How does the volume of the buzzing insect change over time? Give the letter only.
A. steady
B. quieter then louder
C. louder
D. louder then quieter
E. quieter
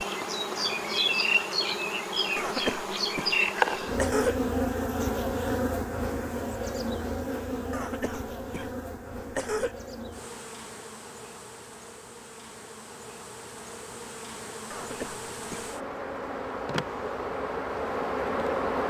B.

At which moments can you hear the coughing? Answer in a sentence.
You can hear the coughing from 2.4 to 4.3 s, from 7.7 to 9.8 s and from 14.7 to 15.7 s.